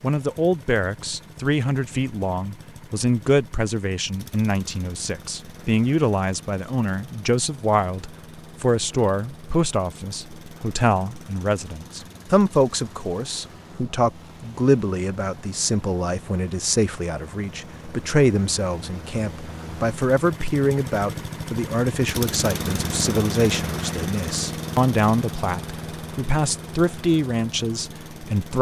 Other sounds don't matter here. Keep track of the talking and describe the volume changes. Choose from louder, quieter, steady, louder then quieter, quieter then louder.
steady.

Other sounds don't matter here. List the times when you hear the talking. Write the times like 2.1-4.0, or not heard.
0.0-28.5.